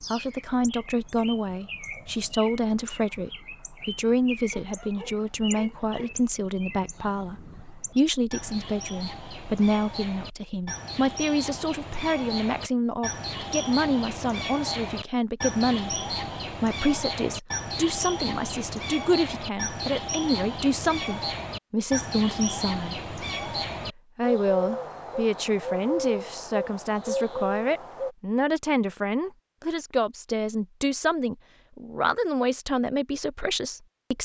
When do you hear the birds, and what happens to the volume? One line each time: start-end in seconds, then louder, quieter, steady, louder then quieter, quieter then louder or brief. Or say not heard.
0.0-28.1 louder.